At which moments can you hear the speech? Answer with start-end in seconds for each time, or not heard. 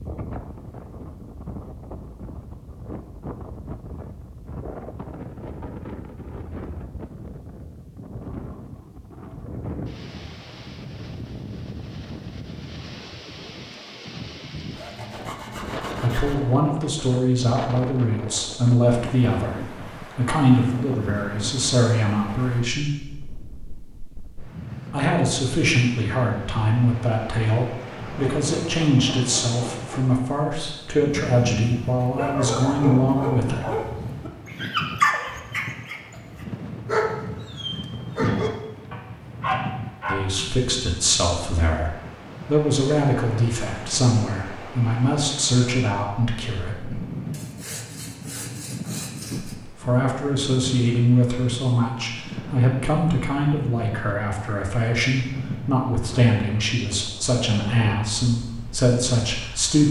16.0-22.9, 24.9-33.6, 40.0-47.0, 49.6-59.8.